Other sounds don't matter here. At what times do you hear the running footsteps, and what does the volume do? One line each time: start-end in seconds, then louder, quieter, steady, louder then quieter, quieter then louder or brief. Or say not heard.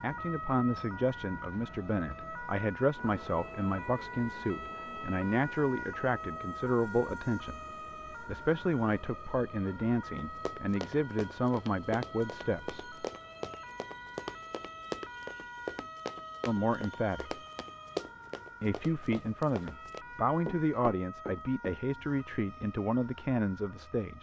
10.2-21.8 steady.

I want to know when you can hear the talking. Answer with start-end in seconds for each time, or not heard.
0.0-12.9, 16.4-17.4, 18.6-24.1.